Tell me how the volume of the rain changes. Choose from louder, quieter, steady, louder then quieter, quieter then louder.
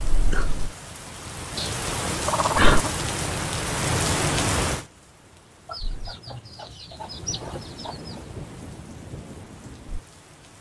louder then quieter.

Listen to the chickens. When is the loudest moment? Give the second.
3 s.